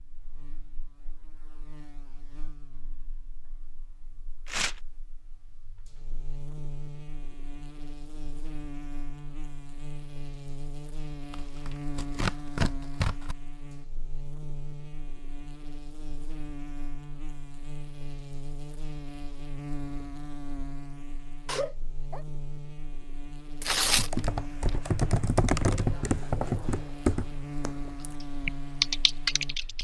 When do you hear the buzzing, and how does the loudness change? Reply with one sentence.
The buzzing can be heard from 0.0 to 29.7 s, getting louder.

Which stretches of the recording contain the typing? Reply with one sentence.
The typing can be heard from 23.9 to 29.7 s.